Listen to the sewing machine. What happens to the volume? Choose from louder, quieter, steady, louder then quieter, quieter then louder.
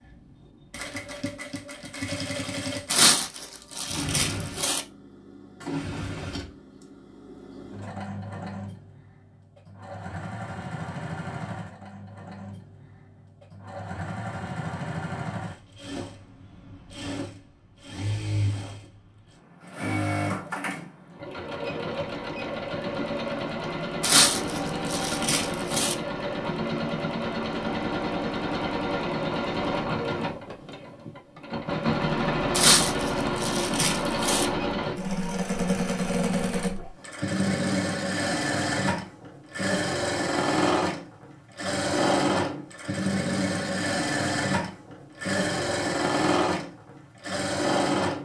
louder.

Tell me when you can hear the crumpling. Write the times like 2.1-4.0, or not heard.
2.9-4.8, 24.0-25.9, 32.5-34.5.